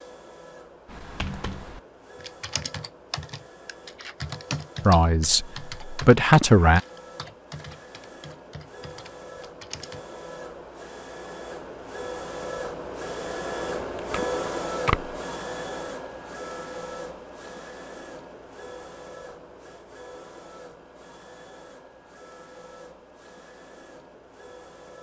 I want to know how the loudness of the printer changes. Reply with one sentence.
The volume of the printer goes up, then down.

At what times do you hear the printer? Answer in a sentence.
The printer can be heard from 0.0 to 24.9 s.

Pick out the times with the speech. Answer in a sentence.
You can hear the speech from 4.8 to 6.8 s.